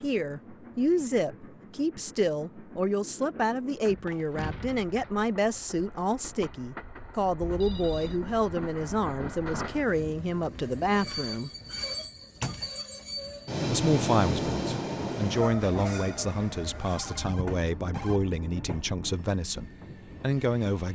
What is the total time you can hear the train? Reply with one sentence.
You can hear the train for 21 seconds altogether.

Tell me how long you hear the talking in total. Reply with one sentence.
You can hear the talking for 19 seconds altogether.